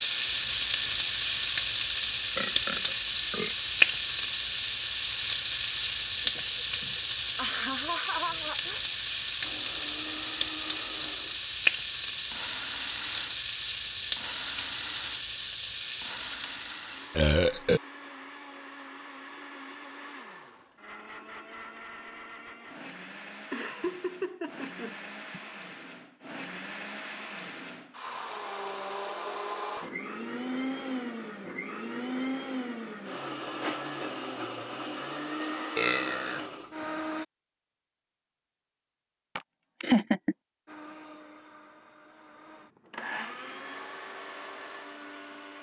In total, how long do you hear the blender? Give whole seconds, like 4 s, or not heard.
33 s.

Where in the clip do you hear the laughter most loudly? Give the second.
40 s.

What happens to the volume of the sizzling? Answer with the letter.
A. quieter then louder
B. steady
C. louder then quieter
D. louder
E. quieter
E.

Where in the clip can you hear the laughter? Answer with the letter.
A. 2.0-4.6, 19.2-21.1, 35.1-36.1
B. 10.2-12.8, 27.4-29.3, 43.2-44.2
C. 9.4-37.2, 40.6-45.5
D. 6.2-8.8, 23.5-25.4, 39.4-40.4
D.